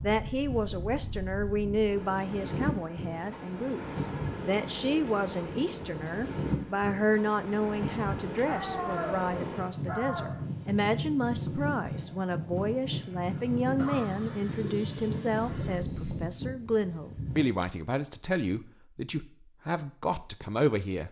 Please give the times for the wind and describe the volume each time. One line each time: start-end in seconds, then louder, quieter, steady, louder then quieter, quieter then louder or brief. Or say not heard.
0.0-17.4 steady.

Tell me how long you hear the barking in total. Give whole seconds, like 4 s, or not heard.
2 s.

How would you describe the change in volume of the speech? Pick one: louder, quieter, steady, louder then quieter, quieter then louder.
steady.